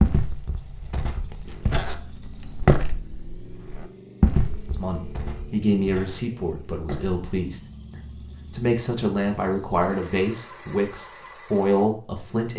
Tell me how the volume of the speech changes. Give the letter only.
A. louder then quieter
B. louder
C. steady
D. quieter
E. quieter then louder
E.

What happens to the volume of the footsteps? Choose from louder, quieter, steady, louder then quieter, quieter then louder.
louder then quieter.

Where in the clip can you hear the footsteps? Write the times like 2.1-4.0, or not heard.
0.0-7.2.